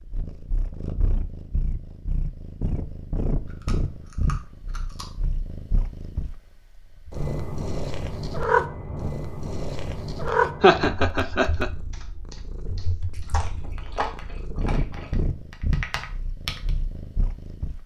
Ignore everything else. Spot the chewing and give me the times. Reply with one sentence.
The chewing can be heard from 3.5 to 5.0 s and from 13.1 to 15.1 s.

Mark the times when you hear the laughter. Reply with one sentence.
The laughter can be heard from 10.2 to 11.7 s.